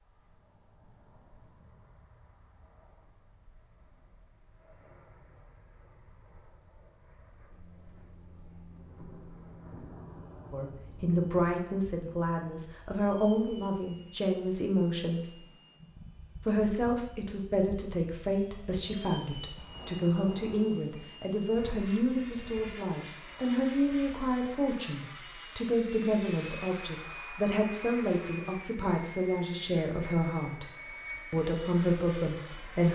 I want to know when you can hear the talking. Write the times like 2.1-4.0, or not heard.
10.5-15.4, 16.4-30.7, 31.3-32.8.